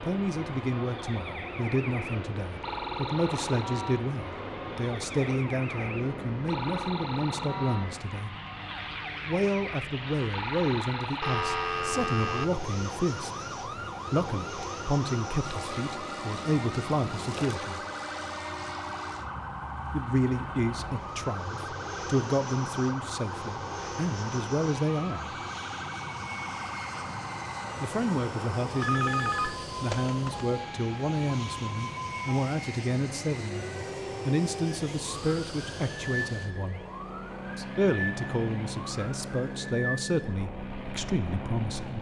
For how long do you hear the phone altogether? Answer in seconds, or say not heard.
3 s.